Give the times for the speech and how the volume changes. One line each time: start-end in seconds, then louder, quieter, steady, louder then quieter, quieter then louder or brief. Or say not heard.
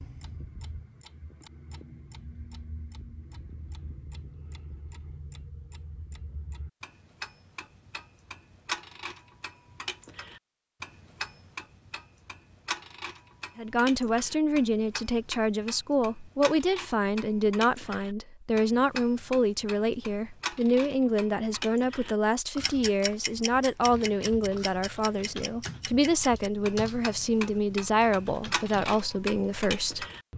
13.6-30.1 steady.